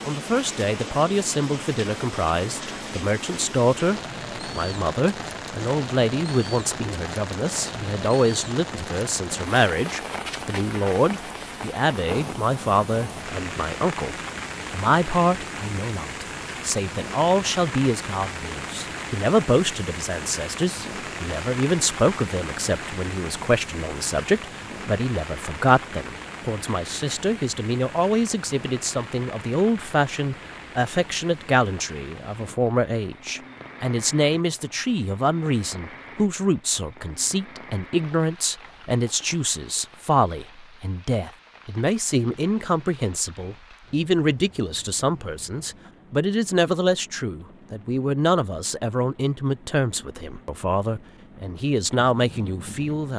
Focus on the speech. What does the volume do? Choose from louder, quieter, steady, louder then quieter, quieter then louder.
steady.